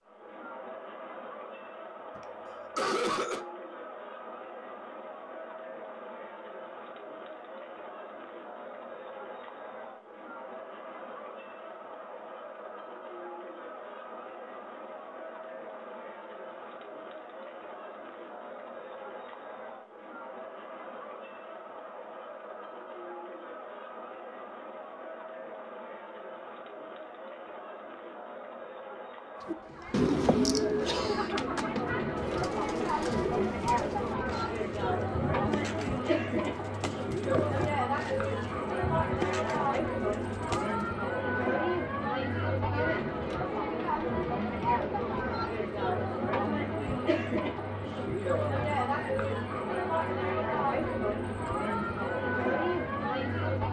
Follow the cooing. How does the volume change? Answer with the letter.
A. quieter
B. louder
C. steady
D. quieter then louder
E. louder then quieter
A.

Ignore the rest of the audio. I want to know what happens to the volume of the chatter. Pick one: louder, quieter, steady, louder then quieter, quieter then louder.
louder.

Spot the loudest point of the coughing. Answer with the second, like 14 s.
3 s.